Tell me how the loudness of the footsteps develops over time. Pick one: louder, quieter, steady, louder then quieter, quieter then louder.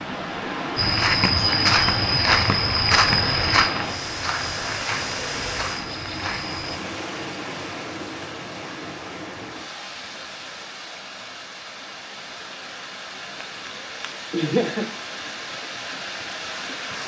quieter.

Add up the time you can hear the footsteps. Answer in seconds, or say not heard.
6 s.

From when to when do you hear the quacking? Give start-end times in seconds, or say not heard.
not heard.